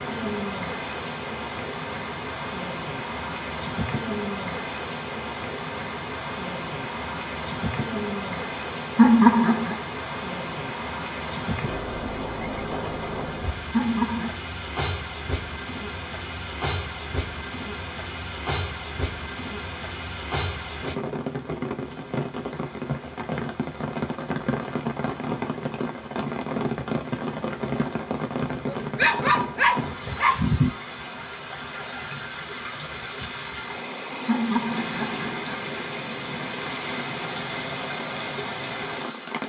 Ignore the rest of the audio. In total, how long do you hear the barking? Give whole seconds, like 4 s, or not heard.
2 s.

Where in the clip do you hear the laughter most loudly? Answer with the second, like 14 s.
9 s.